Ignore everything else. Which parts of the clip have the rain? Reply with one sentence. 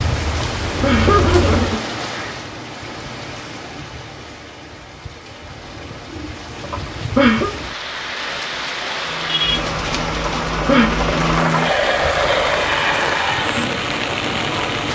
You can hear the rain from 0.0 to 14.9 s.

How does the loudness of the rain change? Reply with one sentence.
The loudness of the rain goes down, then up.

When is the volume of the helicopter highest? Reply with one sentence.
The loudest moment of the helicopter is at 12 seconds.